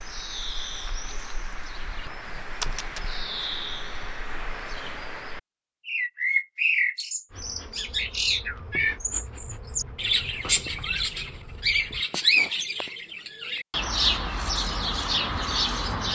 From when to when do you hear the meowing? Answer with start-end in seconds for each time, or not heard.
2.2-3.2.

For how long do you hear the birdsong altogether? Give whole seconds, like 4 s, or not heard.
16 s.